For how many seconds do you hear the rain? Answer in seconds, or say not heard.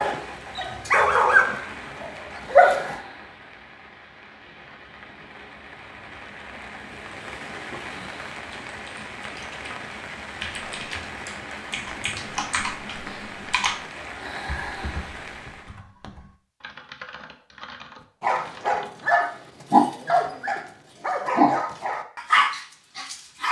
16 s.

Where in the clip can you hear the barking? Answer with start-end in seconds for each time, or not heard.
0.0-3.0, 18.2-23.4.